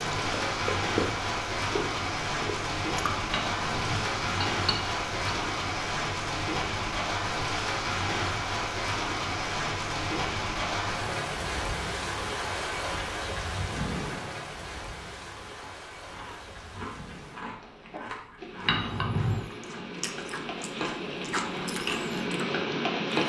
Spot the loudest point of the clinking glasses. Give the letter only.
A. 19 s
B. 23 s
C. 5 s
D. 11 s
A.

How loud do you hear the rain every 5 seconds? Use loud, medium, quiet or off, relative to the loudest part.
loud, loud, loud, quiet, loud.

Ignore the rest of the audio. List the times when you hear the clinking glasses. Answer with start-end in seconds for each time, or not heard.
3.3-5.5, 18.6-19.4.